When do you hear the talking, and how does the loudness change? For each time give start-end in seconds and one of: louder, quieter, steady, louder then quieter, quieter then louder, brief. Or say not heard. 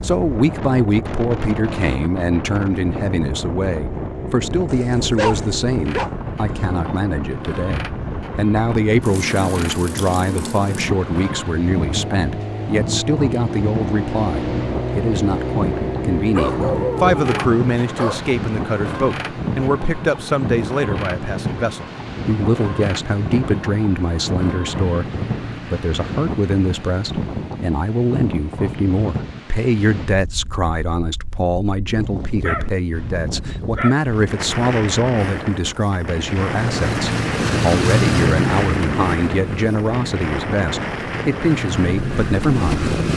0.0-42.9 steady.